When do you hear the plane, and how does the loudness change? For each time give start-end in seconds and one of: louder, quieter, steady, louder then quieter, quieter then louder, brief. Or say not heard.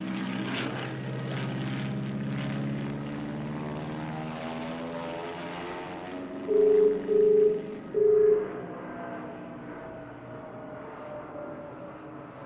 0.0-12.4 quieter.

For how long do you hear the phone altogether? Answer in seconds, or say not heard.
2 s.